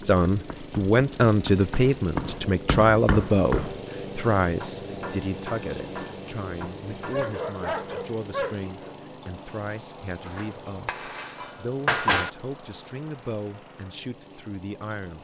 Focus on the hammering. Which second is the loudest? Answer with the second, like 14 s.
12 s.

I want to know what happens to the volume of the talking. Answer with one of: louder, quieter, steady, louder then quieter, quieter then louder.
quieter.